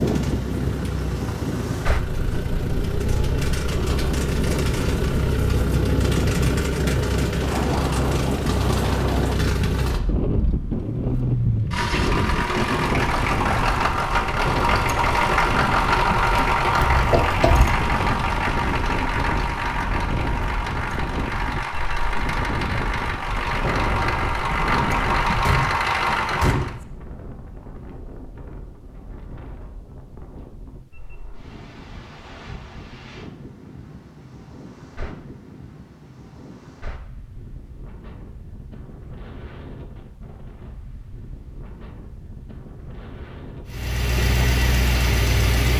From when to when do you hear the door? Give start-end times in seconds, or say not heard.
16.8-17.8, 25.4-26.9.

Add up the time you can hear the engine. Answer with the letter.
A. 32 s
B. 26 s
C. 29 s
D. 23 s
C.